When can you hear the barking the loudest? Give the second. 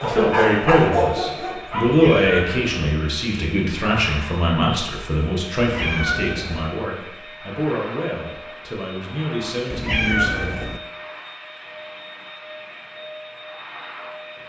1 s.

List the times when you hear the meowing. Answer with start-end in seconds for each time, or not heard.
1.9-2.8, 5.6-6.7, 9.7-10.8.